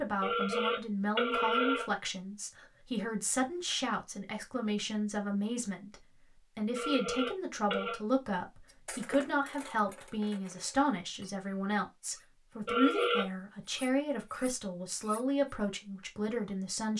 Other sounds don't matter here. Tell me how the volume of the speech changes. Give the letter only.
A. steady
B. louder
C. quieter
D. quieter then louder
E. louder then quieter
A.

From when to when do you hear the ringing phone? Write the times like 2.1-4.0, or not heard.
0.2-1.9, 6.8-8.0, 12.7-13.2.